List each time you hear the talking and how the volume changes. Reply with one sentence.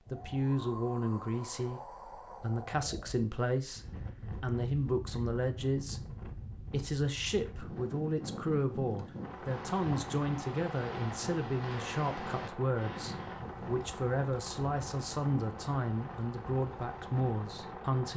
You can hear the talking from 0.1 to 18.1 s, at a steady volume.